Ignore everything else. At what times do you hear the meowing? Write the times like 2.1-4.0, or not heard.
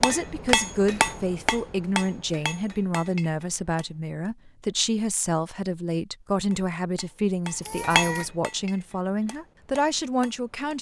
7.6-8.2.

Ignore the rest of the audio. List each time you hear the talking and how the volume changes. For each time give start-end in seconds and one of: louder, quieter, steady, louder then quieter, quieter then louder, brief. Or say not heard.
0.0-10.7 steady.